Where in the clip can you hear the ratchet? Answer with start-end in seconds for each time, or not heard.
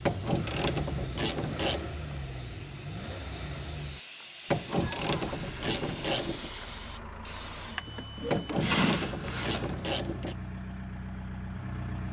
0.1-1.9, 4.5-6.5, 8.3-10.3.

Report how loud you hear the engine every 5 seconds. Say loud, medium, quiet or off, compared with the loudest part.
loud, medium, loud.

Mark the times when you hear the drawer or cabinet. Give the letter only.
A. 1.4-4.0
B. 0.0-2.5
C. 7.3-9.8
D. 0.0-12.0
C.